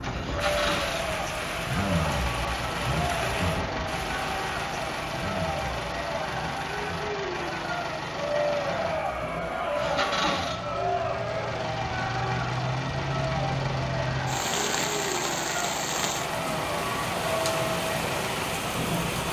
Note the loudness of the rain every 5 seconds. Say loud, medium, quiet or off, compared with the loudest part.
loud, medium, loud, loud.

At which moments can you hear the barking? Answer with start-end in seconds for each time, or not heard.
not heard.